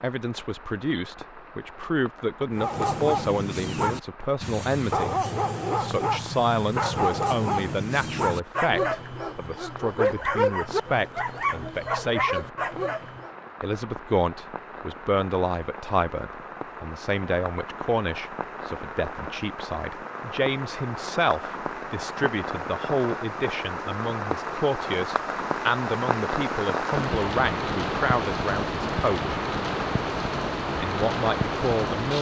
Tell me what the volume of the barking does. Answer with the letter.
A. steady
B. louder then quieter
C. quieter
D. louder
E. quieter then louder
A.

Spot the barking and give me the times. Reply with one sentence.
The barking can be heard from 2.5 to 13.3 s.